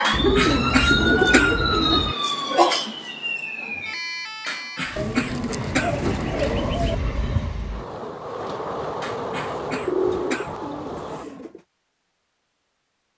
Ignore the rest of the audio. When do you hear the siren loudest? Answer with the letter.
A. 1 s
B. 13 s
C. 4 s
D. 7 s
A.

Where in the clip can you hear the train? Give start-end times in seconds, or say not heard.
5.5-11.2.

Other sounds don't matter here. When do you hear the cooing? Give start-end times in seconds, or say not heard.
0.1-2.1, 5.0-7.0, 9.8-11.6.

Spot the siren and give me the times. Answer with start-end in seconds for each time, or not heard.
0.0-7.5.